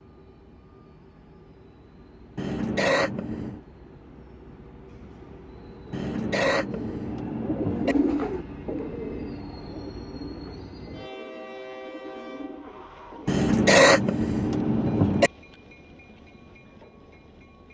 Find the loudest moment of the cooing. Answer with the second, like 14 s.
8 s.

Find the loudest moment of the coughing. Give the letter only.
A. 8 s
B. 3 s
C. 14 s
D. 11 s
C.